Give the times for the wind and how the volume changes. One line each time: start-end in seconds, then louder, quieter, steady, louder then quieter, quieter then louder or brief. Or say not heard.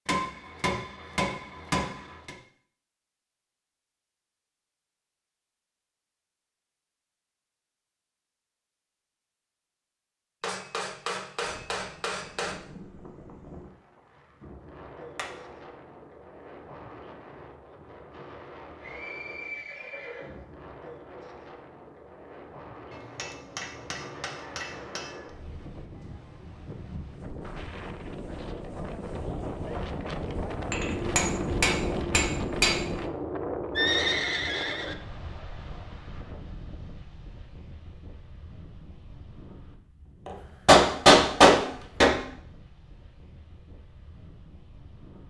11.3-45.2 louder then quieter.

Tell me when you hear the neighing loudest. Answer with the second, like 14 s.
34 s.